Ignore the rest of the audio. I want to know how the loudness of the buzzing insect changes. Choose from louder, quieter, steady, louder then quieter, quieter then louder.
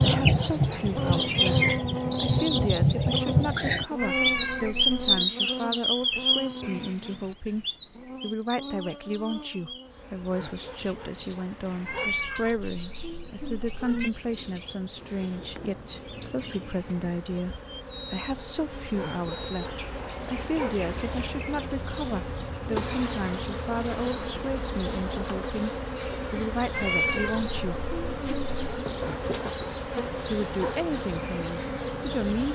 quieter then louder.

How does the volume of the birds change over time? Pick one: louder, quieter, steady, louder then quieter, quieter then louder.
quieter.